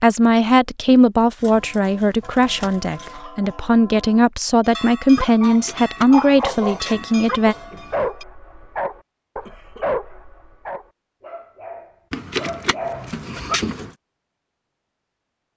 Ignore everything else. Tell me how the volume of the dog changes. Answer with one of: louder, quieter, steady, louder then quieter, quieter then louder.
quieter then louder.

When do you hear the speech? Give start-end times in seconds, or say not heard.
0.0-7.5.